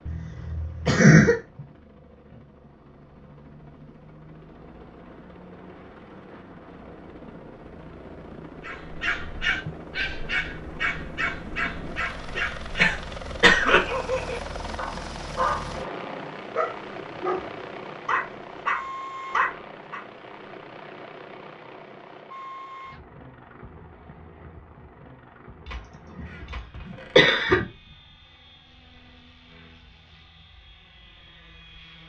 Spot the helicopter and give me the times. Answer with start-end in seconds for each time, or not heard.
0.0-32.0.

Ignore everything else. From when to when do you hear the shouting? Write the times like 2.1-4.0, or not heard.
not heard.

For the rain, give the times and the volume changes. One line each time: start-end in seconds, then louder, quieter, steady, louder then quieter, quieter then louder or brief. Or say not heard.
not heard.